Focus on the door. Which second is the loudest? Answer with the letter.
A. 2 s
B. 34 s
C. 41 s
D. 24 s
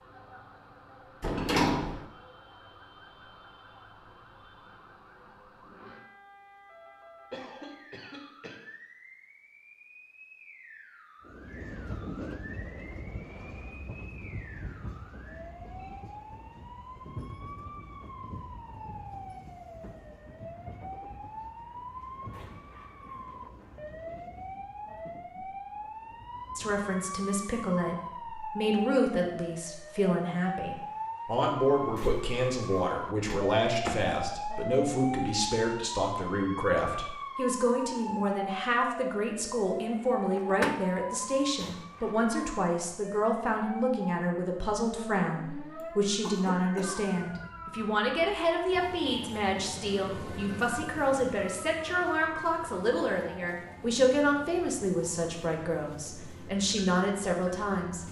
A.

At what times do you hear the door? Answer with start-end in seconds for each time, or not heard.
1.2-2.0, 33.2-34.1, 40.3-40.8.